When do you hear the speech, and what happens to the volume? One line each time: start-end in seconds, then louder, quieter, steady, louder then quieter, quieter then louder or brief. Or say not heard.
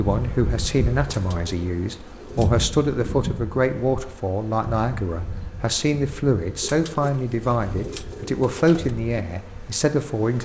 0.0-10.4 steady.